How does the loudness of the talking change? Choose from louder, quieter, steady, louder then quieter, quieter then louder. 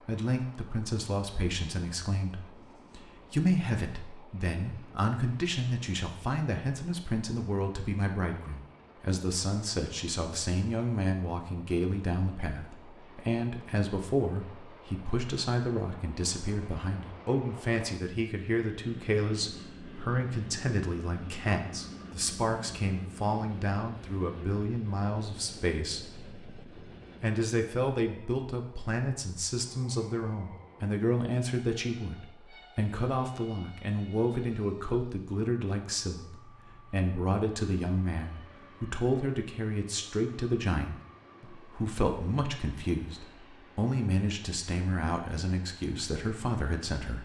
steady.